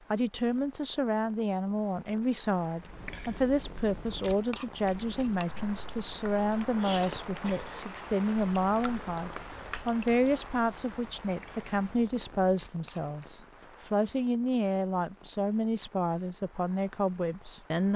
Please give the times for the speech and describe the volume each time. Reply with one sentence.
The speech can be heard from 0.1 to 17.9 s, at a steady volume.